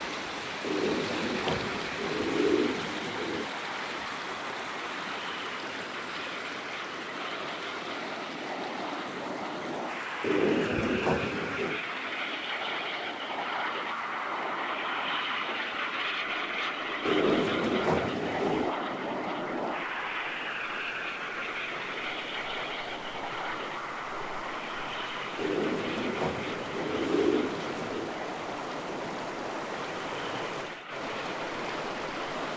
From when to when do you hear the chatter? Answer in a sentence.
The chatter can't be heard in this clip.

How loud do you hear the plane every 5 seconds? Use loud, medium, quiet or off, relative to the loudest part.
medium, medium, loud, loud, loud, medium, medium.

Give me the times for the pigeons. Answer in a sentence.
The pigeons can be heard from 0.6 to 3.5 s, from 10.2 to 11.8 s, from 17.1 to 18.8 s and from 25.4 to 28.1 s.